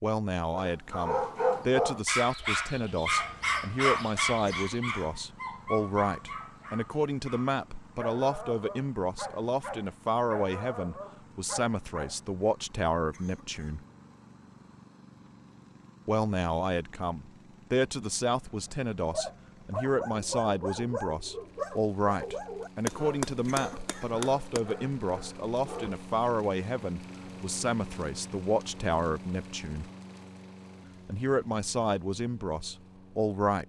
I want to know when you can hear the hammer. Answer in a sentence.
The hammer can be heard from 22.9 to 24.6 s.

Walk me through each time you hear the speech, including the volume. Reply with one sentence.
The speech can be heard from 0.0 to 13.8 s, at a steady volume; from 16.1 to 29.9 s, at a steady volume; and briefly from 31.1 to 33.6 s.